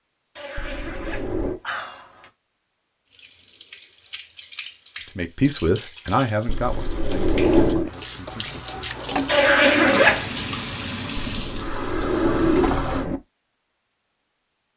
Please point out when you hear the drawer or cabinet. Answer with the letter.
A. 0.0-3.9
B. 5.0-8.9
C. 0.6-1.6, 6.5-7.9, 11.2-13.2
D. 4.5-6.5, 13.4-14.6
C.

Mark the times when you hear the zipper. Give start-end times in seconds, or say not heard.
0.3-2.3, 9.2-10.4.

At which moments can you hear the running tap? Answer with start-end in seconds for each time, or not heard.
3.0-13.1.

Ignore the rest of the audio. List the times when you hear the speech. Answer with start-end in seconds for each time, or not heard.
5.0-8.9.